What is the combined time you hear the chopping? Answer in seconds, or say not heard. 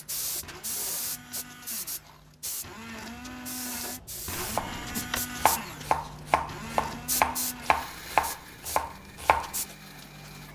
5 s.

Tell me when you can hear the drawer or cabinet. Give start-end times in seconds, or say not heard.
4.3-5.2.